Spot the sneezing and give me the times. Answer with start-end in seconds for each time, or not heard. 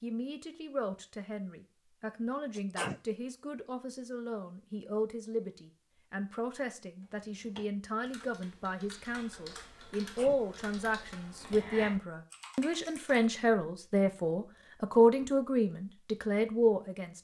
2.5-3.0, 9.9-10.4.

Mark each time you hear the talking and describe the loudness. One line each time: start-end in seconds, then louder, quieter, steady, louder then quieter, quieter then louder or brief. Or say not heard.
0.0-17.1 louder.